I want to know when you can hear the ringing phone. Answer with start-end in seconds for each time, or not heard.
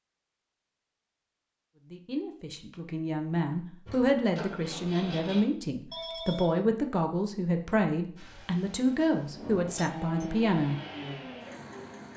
5.9-6.5.